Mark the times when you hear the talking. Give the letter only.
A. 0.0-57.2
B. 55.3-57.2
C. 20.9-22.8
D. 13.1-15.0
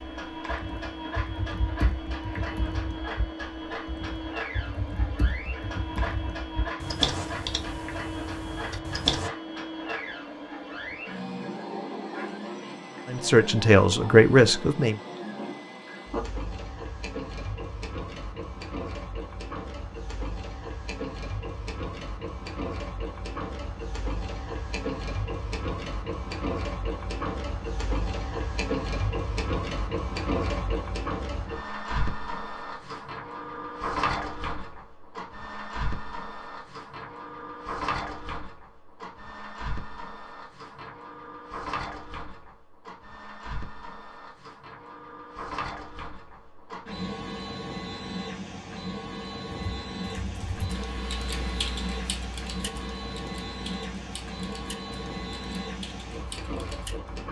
D.